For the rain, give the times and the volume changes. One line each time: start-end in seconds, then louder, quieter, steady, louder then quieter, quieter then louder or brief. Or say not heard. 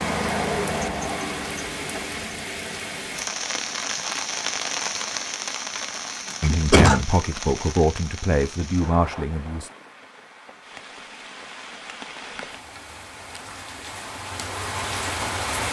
0.0-15.6 quieter then louder.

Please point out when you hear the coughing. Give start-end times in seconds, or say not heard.
6.3-7.0.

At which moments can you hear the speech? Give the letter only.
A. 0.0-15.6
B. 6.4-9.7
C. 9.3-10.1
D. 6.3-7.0
B.